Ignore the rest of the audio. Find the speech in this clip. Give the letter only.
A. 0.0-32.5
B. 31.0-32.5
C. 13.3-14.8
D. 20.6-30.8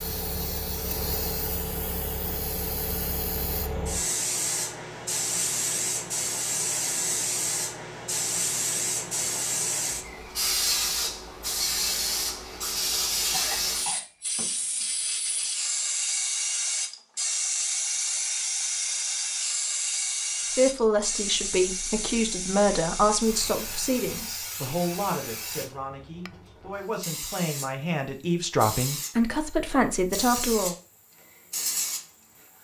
D.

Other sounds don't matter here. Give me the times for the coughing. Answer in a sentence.
You can hear the coughing from 13.3 to 14.8 s.